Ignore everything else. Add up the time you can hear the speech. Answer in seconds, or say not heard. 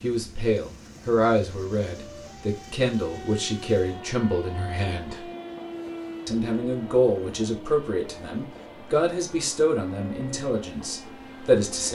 11 s.